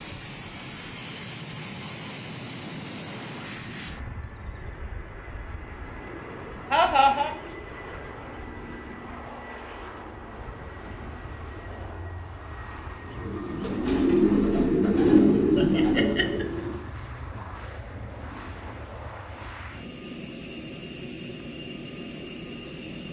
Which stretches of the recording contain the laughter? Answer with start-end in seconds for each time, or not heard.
6.7-7.3, 15.6-16.4.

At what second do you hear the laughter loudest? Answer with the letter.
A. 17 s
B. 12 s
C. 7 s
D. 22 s
C.